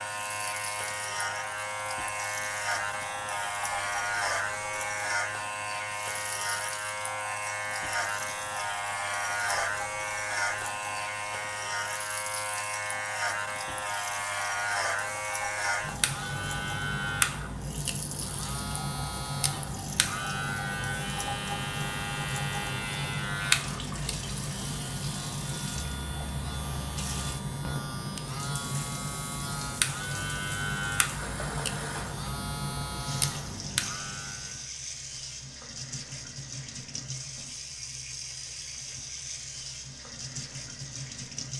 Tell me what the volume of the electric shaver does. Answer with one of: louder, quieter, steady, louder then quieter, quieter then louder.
steady.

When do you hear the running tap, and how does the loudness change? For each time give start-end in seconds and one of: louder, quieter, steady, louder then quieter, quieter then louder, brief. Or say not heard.
0.1-41.5 steady.